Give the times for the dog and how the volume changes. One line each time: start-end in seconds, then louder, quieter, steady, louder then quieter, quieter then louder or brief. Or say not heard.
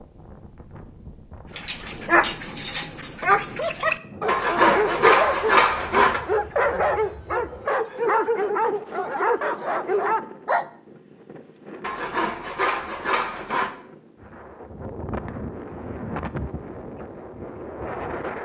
1.5-10.7 steady.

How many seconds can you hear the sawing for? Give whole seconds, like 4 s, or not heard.
4 s.